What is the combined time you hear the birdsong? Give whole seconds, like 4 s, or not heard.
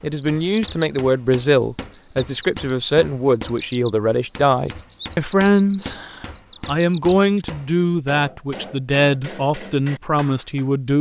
7 s.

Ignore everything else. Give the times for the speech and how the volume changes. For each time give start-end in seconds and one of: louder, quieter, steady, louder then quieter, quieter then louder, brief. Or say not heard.
0.0-10.9 steady.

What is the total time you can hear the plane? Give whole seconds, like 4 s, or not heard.
not heard.